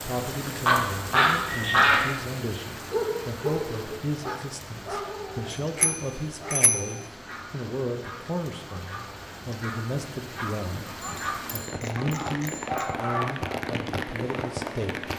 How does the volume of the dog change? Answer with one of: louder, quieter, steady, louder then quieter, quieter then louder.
quieter then louder.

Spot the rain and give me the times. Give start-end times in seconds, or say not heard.
0.0-15.1.